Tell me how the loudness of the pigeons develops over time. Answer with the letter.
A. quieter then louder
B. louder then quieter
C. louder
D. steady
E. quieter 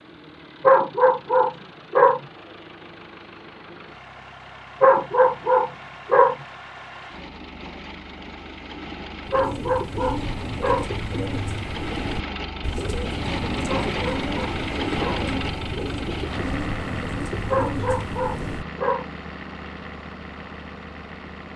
D.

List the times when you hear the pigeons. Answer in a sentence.
You can hear the pigeons from 9.2 to 18.6 s.